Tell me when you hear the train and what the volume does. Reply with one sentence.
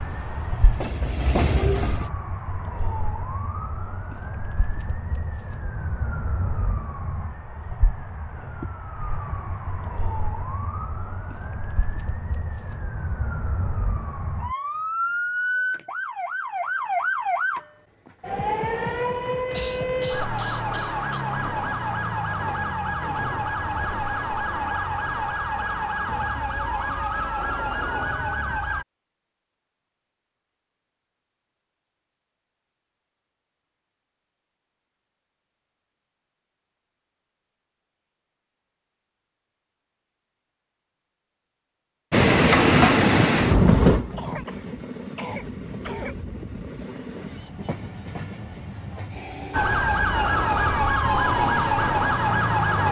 You can hear the train briefly from 0.0 to 2.1 s; and from 42.1 to 52.8 s, getting quieter.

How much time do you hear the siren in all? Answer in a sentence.
The siren can be heard for 32 seconds in total.